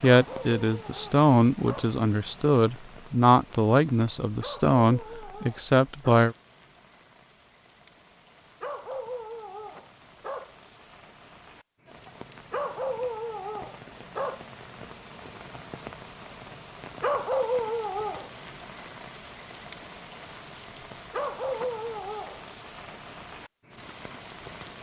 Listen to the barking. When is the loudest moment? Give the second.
17 s.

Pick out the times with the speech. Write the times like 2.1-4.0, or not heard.
0.0-6.3.